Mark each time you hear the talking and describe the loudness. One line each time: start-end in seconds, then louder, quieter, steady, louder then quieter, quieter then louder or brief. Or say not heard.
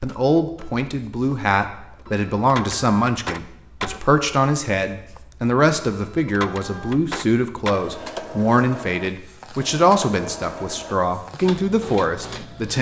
0.0-12.7 steady.